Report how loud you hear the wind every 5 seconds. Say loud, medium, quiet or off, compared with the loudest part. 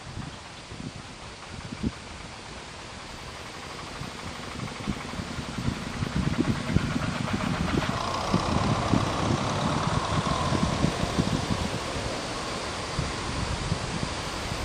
medium, loud, loud.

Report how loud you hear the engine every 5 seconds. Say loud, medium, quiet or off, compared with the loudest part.
quiet, loud, loud.